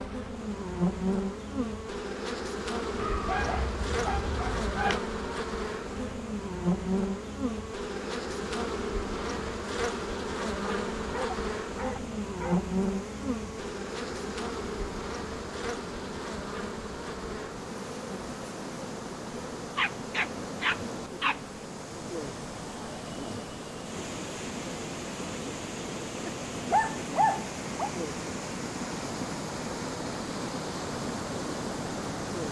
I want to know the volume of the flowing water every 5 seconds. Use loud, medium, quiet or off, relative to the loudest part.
quiet, quiet, medium, medium, medium, loud, loud.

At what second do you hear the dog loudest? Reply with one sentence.
The volume of the dog peaks at 27 seconds.